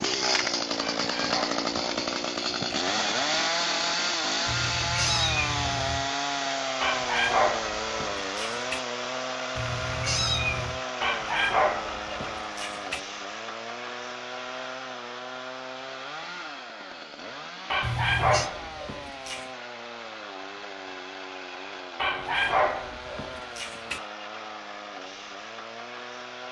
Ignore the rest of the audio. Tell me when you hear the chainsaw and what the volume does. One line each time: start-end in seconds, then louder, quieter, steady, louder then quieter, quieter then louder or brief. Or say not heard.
0.0-26.4 quieter.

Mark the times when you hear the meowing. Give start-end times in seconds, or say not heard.
4.5-6.1, 9.6-10.8, 17.8-18.5.